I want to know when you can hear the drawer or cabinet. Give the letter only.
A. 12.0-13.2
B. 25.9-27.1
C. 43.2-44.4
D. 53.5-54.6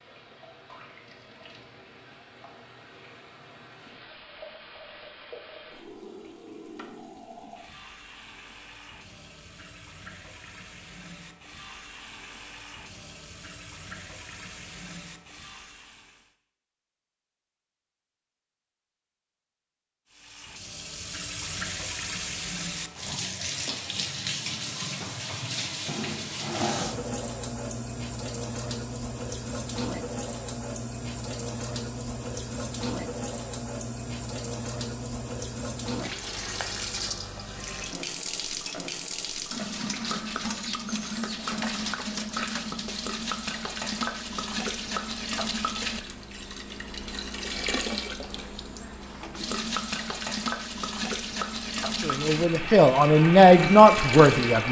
B.